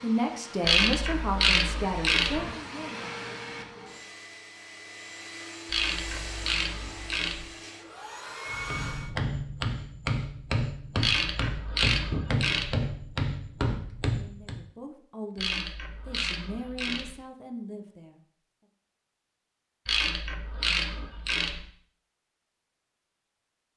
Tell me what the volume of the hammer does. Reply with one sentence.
The loudness of the hammer stays about the same.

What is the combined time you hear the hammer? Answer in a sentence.
You can hear the hammer for 6 seconds altogether.